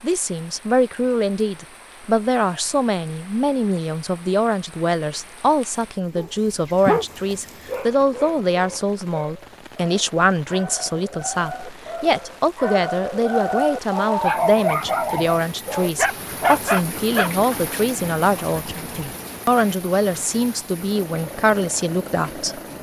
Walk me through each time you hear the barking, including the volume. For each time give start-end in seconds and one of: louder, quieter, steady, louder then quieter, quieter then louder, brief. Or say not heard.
6.2-17.3 quieter then louder.